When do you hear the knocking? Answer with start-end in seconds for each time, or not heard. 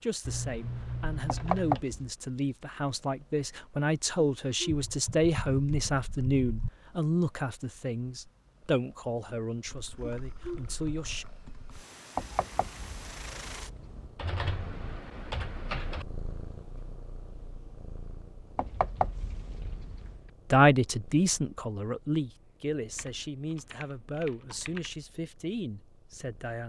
1.2-2.1, 12.2-14.1, 18.6-20.2.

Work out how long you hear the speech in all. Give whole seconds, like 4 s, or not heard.
17 s.